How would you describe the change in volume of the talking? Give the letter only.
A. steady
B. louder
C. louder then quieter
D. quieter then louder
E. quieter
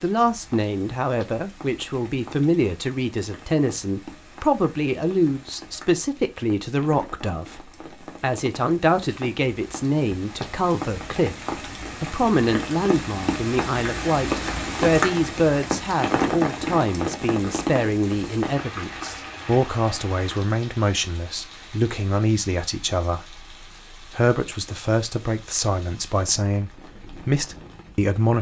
A.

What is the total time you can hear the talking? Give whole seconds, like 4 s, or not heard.
28 s.